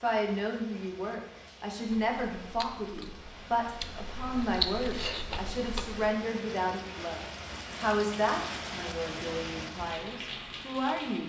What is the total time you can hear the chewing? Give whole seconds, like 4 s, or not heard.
4 s.